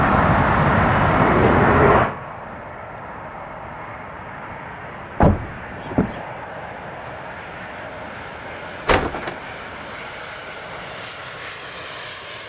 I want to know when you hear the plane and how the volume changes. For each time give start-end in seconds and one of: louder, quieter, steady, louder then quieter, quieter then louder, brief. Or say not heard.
0.0-12.4 quieter.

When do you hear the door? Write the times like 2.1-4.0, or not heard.
1.1-2.1, 5.2-6.2, 8.8-9.3.